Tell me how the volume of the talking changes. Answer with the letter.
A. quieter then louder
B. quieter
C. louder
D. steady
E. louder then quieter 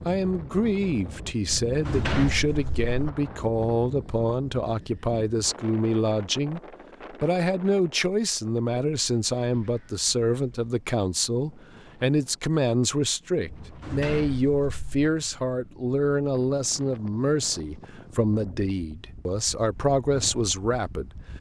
D.